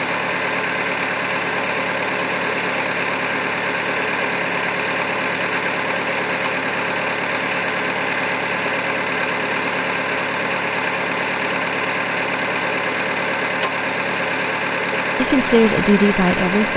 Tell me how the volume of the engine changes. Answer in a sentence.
The loudness of the engine stays about the same.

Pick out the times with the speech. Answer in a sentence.
The speech can be heard from 15.2 to 16.7 s.